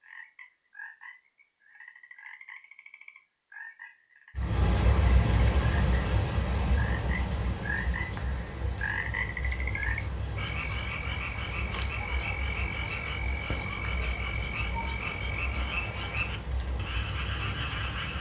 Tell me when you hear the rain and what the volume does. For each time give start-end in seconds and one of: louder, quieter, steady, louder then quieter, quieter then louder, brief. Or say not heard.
4.3-18.1 quieter.